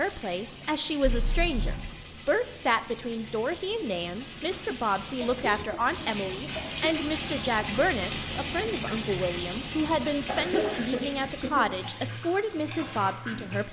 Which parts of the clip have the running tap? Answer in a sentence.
You can hear the running tap from 0.0 to 13.6 s.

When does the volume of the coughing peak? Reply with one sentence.
The loudest moment of the coughing is at 11 seconds.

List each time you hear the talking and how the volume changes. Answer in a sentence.
You can hear the talking from 0.0 to 13.6 s, at a steady volume.